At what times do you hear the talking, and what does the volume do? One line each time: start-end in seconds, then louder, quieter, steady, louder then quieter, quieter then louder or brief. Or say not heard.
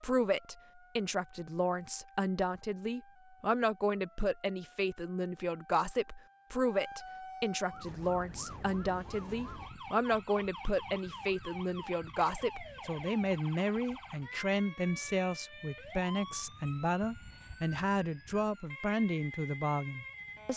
0.0-20.5 steady.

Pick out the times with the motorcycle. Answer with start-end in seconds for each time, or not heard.
not heard.